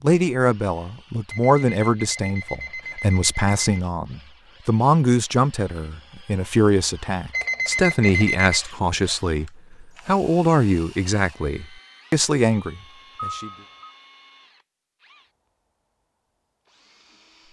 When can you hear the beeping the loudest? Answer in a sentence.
The loudest moment of the beeping is at 8 seconds.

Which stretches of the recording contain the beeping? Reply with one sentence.
You can hear the beeping from 1.3 to 3.8 s, from 7.3 to 8.6 s and from 13.2 to 13.9 s.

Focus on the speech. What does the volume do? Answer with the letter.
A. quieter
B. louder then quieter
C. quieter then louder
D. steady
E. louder
D.